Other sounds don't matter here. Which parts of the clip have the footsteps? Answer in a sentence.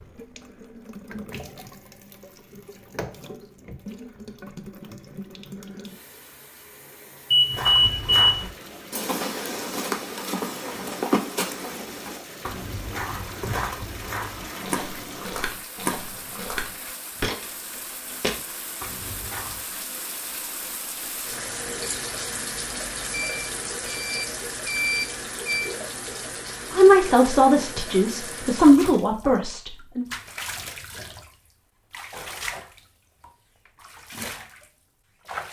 You can hear the footsteps from 7.5 to 19.6 s.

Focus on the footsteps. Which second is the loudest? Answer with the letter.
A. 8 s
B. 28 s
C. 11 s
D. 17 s
C.